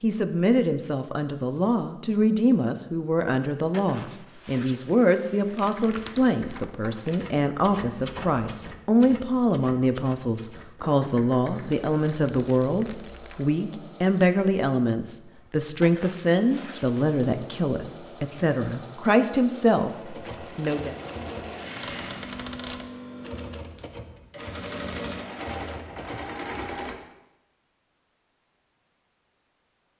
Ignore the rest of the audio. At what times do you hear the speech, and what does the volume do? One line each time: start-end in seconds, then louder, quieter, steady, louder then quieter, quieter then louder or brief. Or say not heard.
0.0-20.9 steady.